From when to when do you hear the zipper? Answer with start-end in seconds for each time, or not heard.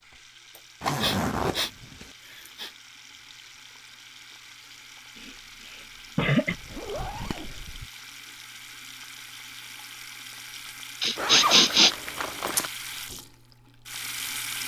0.8-2.1, 6.5-7.8, 11.2-12.7.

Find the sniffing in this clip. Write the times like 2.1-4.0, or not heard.
0.6-1.7, 2.3-2.7, 5.2-6.5, 11.0-11.9.